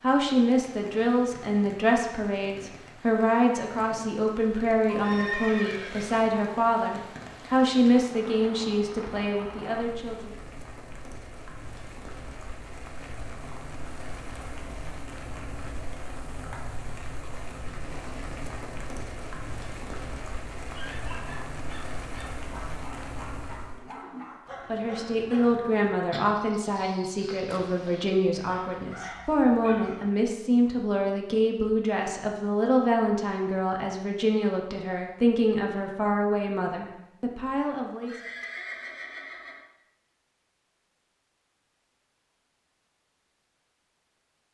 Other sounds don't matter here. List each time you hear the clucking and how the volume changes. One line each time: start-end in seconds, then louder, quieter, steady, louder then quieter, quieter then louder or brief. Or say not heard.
not heard.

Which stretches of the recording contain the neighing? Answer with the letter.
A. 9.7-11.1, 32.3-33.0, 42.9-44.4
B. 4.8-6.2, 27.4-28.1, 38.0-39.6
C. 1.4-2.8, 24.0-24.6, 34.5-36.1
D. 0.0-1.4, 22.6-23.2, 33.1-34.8
B.